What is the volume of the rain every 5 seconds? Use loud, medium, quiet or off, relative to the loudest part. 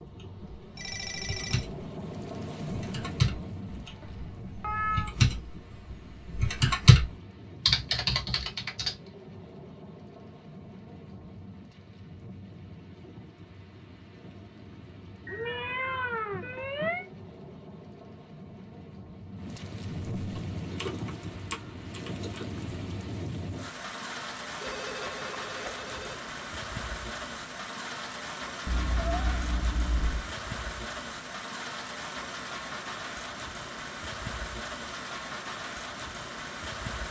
loud, medium, medium, medium, loud, loud, loud, loud.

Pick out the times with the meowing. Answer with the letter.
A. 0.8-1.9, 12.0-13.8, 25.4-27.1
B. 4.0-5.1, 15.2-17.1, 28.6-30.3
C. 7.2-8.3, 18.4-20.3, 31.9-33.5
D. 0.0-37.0
B.